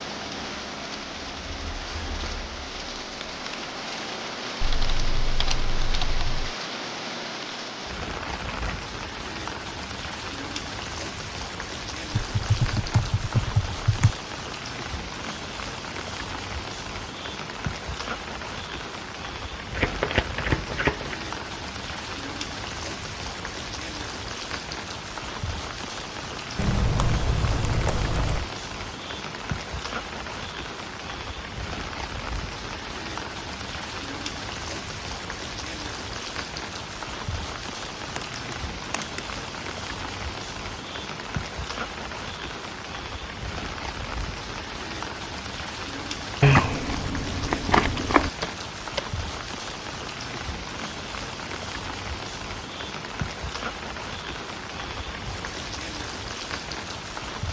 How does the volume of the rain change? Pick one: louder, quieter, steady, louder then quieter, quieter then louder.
steady.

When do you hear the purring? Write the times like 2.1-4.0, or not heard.
not heard.